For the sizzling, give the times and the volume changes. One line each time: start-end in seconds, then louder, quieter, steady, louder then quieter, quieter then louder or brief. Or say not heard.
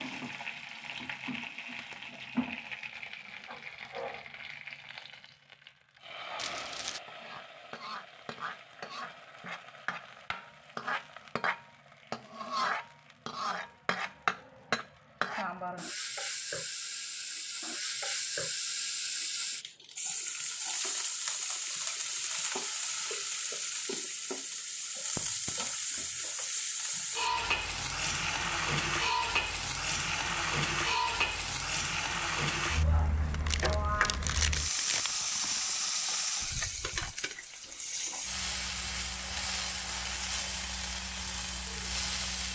0.0-42.5 louder.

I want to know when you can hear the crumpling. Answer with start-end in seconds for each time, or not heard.
6.3-7.0, 33.2-35.9.